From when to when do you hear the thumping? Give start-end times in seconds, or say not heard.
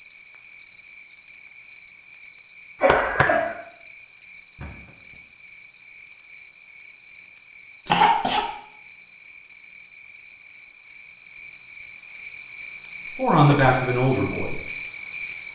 4.5-5.2.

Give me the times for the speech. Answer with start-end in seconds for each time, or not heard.
13.2-14.6.